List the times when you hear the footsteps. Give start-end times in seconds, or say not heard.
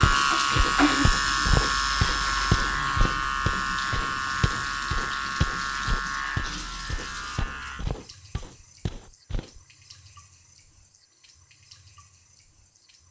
0.0-9.6.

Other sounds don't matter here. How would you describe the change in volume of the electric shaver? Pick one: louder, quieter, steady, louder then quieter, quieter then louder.
quieter.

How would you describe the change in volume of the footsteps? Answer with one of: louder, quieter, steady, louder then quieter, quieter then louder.
quieter.